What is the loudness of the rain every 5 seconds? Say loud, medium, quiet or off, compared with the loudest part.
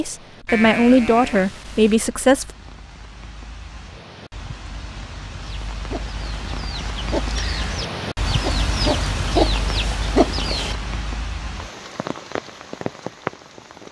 quiet, loud, loud.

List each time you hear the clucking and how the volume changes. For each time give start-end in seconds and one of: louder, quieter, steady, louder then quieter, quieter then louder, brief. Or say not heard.
5.4-10.8 louder.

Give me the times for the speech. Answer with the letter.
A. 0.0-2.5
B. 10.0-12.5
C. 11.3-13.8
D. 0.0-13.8
A.